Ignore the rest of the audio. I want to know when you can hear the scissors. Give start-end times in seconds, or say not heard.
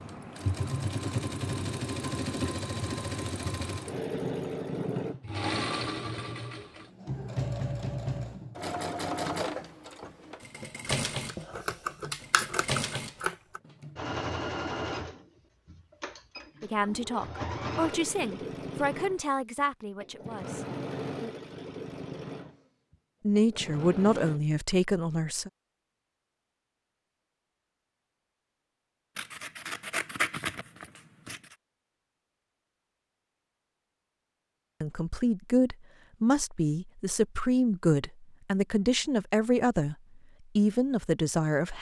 10.8-13.6, 29.1-31.6.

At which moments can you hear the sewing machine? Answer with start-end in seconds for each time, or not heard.
0.0-24.4.